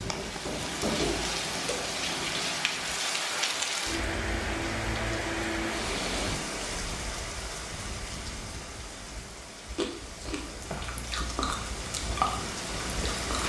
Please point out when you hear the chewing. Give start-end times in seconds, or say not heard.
9.7-13.4.